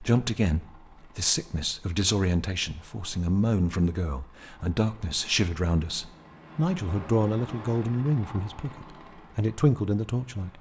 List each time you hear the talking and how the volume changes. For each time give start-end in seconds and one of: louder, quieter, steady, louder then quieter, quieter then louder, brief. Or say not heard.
0.0-10.5 steady.